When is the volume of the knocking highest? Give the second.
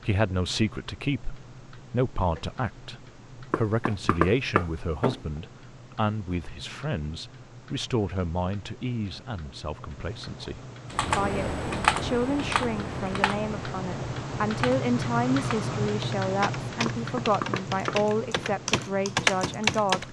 4 s.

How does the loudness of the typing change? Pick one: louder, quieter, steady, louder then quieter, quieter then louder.
quieter then louder.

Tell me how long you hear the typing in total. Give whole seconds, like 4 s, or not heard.
9 s.